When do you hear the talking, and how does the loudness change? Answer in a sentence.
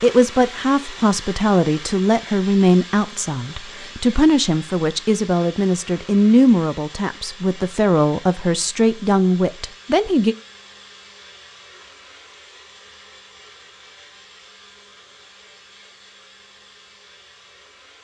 You can hear the talking from 0.0 to 10.3 s, at a steady volume.